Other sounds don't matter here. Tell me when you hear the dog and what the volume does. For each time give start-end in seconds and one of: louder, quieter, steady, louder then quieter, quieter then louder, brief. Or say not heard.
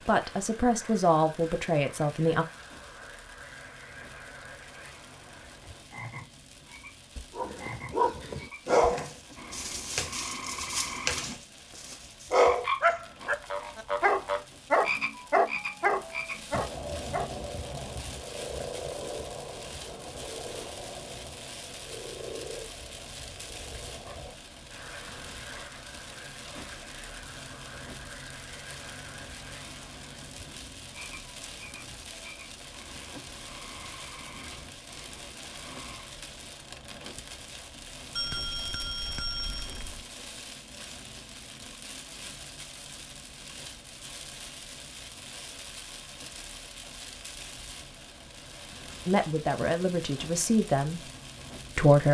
7.3-17.3 quieter then louder.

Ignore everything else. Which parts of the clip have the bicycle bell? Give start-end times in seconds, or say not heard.
38.1-40.0.